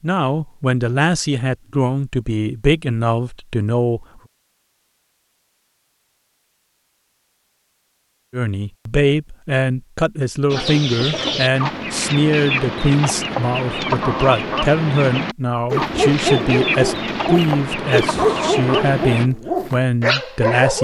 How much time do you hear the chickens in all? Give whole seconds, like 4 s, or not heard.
9 s.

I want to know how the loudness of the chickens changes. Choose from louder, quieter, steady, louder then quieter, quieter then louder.
steady.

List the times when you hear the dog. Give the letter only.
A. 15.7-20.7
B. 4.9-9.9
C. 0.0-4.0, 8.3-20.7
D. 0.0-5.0
A.